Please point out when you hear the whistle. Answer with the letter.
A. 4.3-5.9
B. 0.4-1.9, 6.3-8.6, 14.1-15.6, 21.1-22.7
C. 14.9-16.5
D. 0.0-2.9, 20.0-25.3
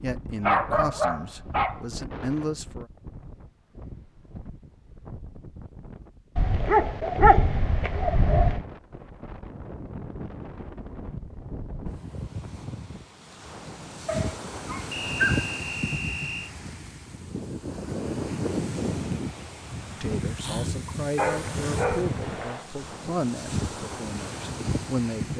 C.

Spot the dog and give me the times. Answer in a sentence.
The dog can be heard from 0.4 to 1.9 s, from 6.3 to 8.6 s, from 14.1 to 15.6 s and from 21.1 to 22.7 s.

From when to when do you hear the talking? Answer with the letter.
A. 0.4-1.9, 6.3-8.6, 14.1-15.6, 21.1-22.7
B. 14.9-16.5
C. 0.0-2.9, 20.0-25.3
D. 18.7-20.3
C.